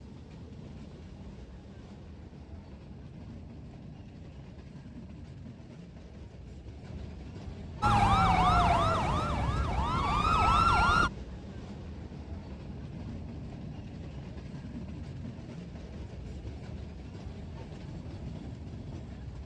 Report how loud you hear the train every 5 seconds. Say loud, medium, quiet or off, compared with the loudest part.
medium, loud, loud, loud.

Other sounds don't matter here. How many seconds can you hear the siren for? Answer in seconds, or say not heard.
3 s.